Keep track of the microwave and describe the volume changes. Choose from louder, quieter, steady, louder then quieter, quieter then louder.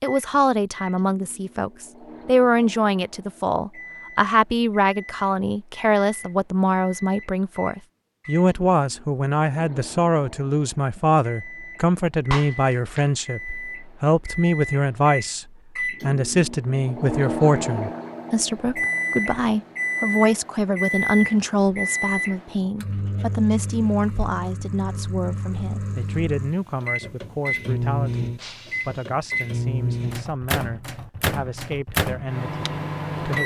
louder.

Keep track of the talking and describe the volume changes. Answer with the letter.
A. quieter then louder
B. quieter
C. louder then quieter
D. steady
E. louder
B.